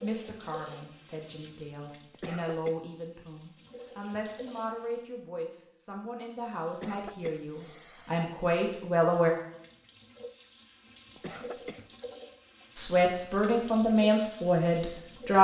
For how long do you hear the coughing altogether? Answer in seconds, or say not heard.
3 s.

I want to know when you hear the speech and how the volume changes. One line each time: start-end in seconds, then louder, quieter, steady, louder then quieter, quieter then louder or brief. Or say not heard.
0.0-9.3 louder
12.8-15.3 brief.